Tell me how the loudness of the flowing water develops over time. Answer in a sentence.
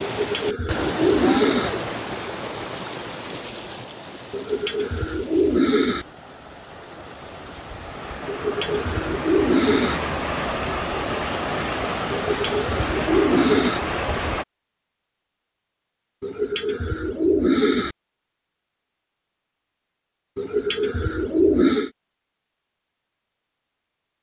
The loudness of the flowing water goes down, then up.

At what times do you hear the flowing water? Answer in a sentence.
The flowing water can be heard from 0.0 to 14.4 s.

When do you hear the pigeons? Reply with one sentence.
You can hear the pigeons from 0.0 to 1.7 s, from 4.3 to 6.0 s, from 8.2 to 10.0 s, from 12.1 to 13.8 s, from 16.2 to 17.9 s and from 20.4 to 21.9 s.